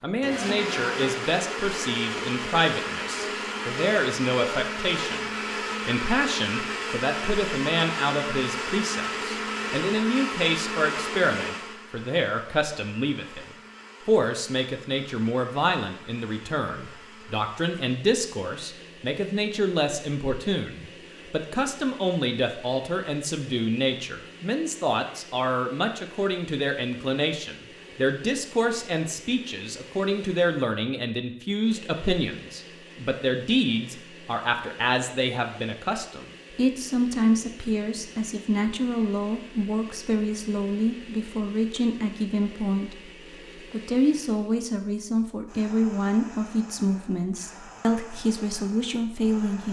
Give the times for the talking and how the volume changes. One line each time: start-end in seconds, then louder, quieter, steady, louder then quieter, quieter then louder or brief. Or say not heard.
0.0-49.6 steady.